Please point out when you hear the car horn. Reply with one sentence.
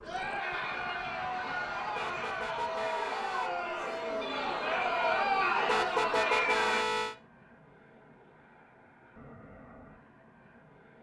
You can hear the car horn from 1.9 to 3.5 s and from 5.7 to 7.2 s.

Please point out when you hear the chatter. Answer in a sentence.
You can hear the chatter from 0.0 to 6.8 s.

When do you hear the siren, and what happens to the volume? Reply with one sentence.
The siren can't be heard in this clip.